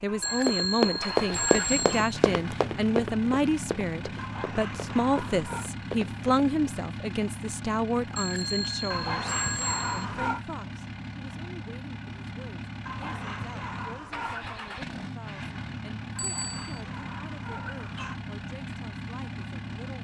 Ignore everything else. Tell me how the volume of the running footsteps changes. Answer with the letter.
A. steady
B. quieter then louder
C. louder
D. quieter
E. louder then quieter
D.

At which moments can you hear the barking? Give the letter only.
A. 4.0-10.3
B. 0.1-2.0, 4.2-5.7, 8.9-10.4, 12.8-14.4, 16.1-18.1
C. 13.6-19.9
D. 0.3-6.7
B.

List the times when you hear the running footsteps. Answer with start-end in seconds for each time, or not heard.
0.3-6.7.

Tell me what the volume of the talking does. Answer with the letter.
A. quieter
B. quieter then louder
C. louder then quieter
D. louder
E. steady
A.